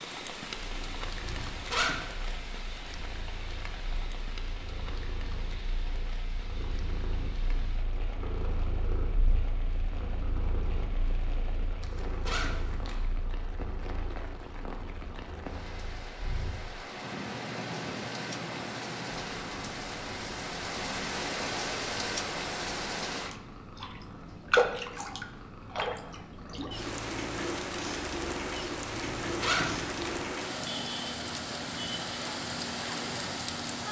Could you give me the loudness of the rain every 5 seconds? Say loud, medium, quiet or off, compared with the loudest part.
medium, quiet, quiet, medium, loud, loud, loud.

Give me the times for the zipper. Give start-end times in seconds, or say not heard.
1.2-1.9, 11.8-13.0, 29.2-30.1.